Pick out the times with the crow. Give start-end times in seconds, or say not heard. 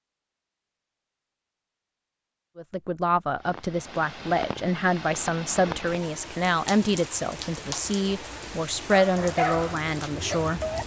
not heard.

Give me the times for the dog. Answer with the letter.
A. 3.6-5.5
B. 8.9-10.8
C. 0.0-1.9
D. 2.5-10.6
B.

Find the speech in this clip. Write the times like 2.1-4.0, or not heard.
2.5-10.6.